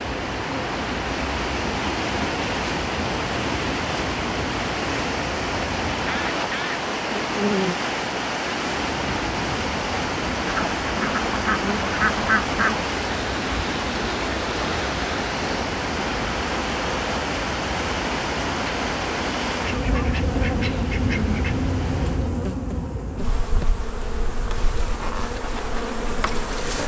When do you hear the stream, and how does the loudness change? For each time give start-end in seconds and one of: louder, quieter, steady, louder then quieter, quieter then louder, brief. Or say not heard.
0.0-22.4 steady.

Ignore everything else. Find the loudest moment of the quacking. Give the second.
12 s.